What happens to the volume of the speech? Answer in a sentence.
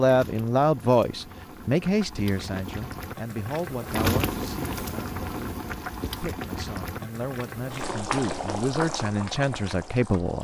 The loudness of the speech goes down, then up.